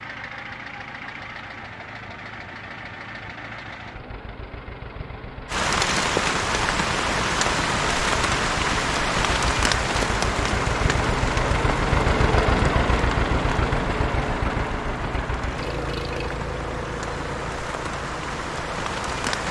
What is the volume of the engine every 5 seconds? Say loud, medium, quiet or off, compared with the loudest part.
quiet, medium, loud, medium.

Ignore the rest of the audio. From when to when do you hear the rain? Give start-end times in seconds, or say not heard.
5.5-19.4.